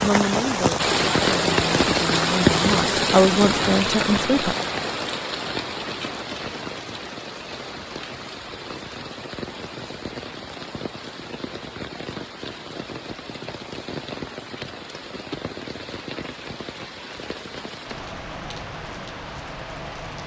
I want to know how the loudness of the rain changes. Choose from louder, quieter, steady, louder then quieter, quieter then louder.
quieter.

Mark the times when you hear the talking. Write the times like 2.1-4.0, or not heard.
0.0-4.5.